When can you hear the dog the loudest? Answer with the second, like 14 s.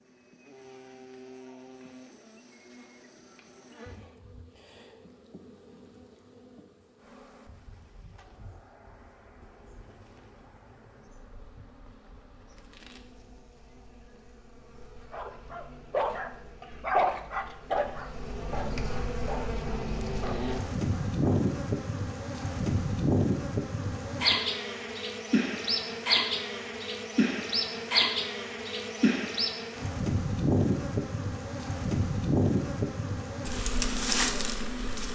17 s.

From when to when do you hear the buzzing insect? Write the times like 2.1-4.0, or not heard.
0.0-35.1.